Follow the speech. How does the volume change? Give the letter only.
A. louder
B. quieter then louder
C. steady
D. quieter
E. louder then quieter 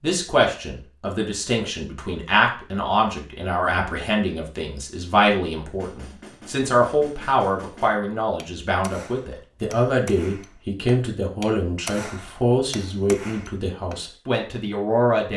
C.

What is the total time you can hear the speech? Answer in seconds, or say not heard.
15 s.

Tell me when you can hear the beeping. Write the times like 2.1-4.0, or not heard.
not heard.